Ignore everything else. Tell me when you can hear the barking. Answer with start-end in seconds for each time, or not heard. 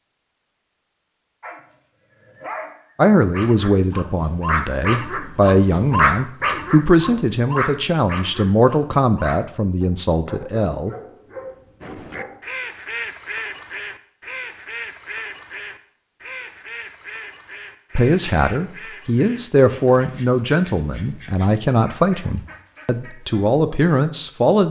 1.4-12.4.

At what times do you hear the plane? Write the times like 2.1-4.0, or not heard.
not heard.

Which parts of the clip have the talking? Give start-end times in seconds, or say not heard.
3.0-10.9, 17.9-24.6.